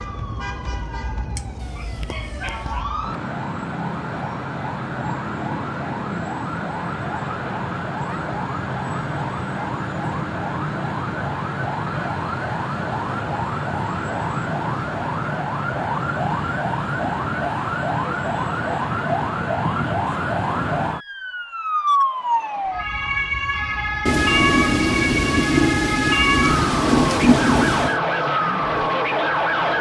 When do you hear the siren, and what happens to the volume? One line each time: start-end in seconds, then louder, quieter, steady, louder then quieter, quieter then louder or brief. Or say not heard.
0.0-29.7 louder.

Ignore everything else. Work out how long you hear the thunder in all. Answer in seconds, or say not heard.
4 s.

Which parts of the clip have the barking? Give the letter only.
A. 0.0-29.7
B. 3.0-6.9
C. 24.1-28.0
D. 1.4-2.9
D.